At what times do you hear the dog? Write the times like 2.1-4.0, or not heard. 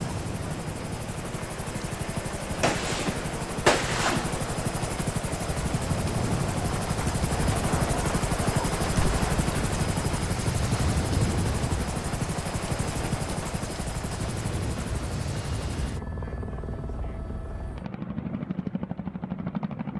not heard.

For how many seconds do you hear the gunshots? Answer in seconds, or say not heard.
2 s.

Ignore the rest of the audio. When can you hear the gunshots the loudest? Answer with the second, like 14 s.
4 s.